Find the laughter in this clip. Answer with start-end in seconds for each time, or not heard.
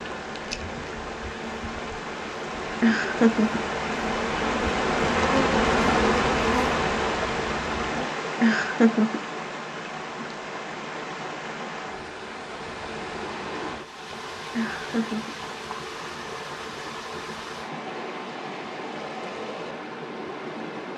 2.8-3.6, 8.4-9.2, 14.5-15.3.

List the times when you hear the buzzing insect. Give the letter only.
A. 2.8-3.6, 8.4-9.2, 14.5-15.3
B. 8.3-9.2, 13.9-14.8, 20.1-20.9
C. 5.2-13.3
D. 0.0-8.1
D.